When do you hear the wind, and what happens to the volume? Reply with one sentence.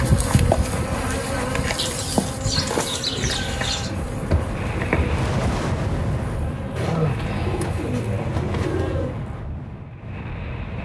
The wind can be heard from 0.1 to 10.8 s, getting louder then quieter.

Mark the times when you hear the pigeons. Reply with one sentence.
You can hear the pigeons from 1.8 to 3.9 s and from 6.8 to 9.2 s.